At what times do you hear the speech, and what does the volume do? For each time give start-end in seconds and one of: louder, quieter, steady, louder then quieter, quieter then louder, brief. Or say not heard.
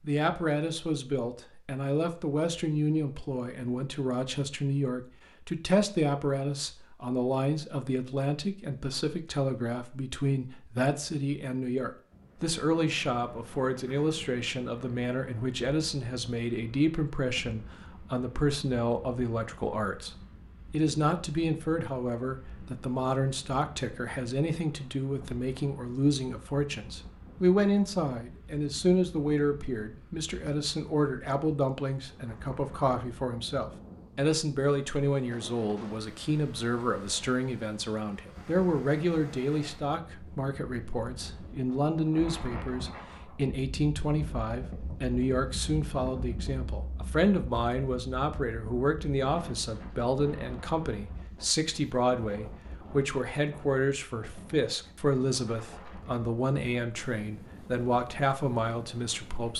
0.0-59.5 steady.